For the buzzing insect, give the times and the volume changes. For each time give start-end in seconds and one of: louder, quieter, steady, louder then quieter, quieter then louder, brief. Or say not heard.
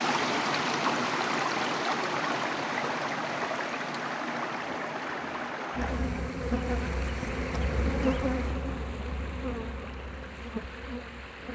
5.8-11.4 quieter.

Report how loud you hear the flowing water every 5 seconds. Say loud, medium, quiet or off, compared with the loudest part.
loud, medium, quiet.